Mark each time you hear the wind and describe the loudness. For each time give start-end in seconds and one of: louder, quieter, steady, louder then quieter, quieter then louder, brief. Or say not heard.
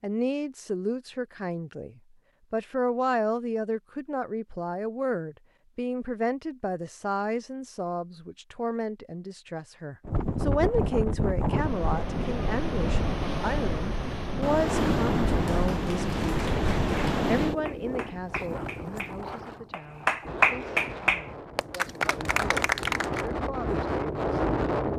10.1-24.9 quieter then louder.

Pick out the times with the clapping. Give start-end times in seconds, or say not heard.
15.3-23.4.